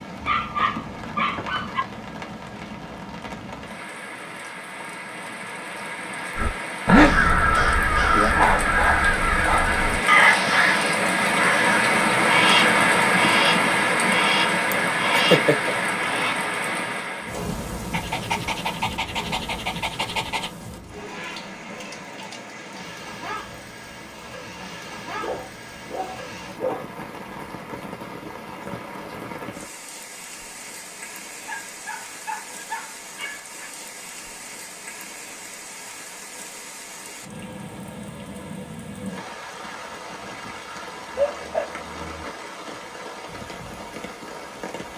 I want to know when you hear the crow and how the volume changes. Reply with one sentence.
You can hear the crow from 6.3 to 16.5 s, getting quieter.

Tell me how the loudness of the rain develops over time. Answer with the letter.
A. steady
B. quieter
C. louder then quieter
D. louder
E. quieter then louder
C.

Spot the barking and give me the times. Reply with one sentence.
You can hear the barking from 0.2 to 1.9 s, from 8.3 to 10.4 s, from 17.9 to 20.5 s, from 25.2 to 26.9 s, from 31.4 to 33.7 s and from 41.1 to 42.2 s.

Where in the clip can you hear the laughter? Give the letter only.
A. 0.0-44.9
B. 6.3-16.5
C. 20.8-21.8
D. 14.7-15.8
D.